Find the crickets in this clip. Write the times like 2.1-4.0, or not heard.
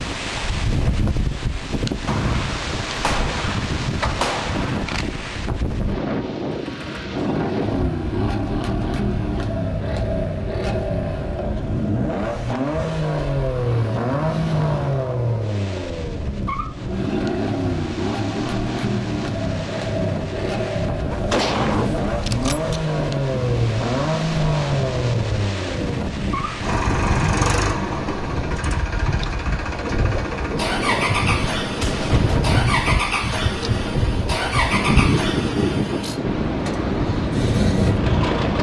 not heard.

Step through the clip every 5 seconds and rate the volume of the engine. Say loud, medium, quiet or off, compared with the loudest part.
off, loud, loud, loud, loud, loud, loud, loud.